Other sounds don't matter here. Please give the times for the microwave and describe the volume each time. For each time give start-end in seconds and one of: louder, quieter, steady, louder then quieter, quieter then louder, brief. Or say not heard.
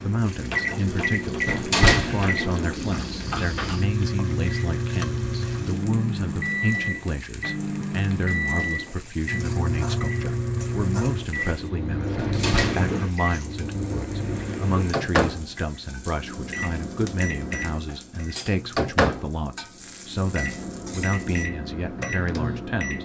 0.0-23.0 steady.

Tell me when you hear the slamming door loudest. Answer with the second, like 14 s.
2 s.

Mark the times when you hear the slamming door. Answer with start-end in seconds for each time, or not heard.
1.4-2.3, 12.2-12.8.